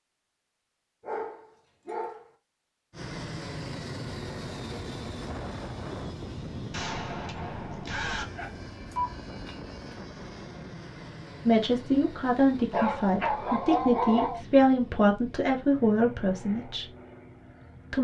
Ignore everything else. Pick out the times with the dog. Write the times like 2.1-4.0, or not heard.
1.0-2.2, 8.2-9.9, 12.7-14.4.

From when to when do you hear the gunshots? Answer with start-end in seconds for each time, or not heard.
6.7-8.2.